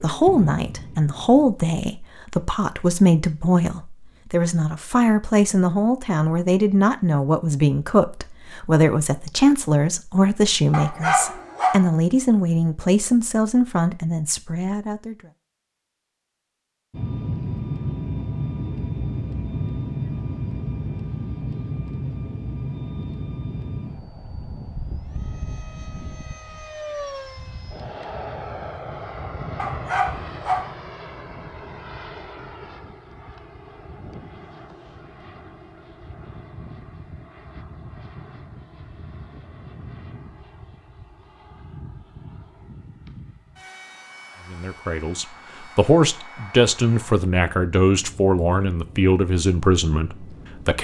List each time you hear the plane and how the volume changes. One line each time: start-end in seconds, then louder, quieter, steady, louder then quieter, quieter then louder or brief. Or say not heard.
0.0-1.6 brief
16.9-50.8 quieter.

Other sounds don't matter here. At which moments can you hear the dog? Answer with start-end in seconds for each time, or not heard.
10.7-11.9, 29.6-30.8.